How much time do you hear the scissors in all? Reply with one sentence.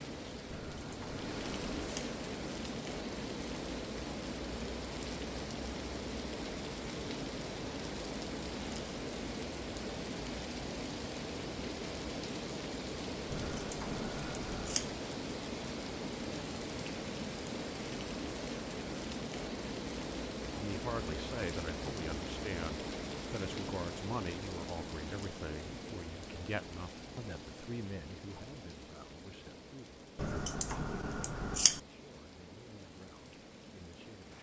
The scissors can be heard for 5 seconds in total.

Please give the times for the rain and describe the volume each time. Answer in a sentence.
You can hear the rain from 0.0 to 34.3 s, getting quieter.